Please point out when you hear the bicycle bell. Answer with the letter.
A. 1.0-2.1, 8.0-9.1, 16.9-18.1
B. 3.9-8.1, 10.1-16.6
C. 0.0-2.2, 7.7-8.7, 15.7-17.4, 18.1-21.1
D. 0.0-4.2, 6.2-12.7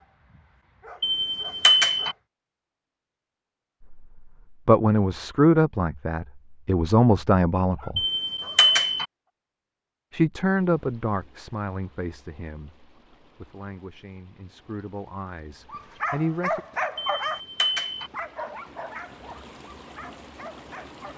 A.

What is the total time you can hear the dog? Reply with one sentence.
You can hear the dog for 8 seconds altogether.